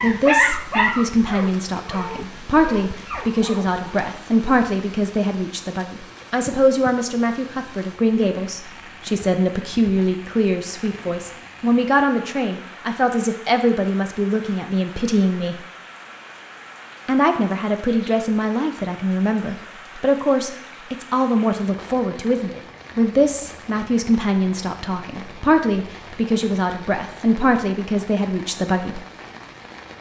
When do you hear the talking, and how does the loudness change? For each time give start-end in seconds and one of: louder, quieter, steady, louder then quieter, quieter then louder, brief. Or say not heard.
0.0-15.6 steady
17.1-29.0 steady.